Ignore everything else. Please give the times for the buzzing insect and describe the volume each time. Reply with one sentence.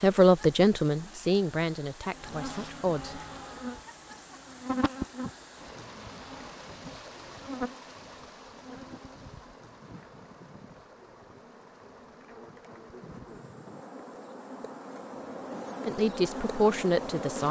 You can hear the buzzing insect from 2.1 to 17.4 s, getting quieter then louder.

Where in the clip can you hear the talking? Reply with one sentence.
You can hear the talking from 0.0 to 3.1 s and from 15.8 to 17.4 s.